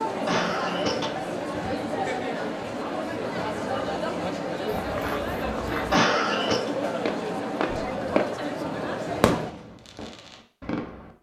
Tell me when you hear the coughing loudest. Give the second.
6 s.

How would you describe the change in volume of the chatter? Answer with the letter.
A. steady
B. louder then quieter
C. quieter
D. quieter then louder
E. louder
A.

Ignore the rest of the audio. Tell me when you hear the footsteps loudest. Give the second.
8 s.